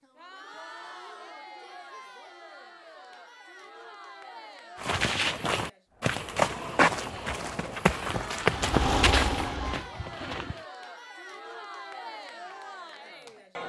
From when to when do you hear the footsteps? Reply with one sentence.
You can hear the footsteps from 4.8 to 10.7 s.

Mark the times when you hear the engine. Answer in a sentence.
The engine can be heard from 8.3 to 10.6 s.